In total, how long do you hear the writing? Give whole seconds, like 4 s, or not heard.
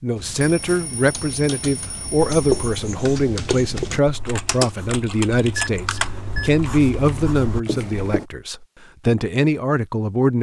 6 s.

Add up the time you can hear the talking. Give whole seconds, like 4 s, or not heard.
10 s.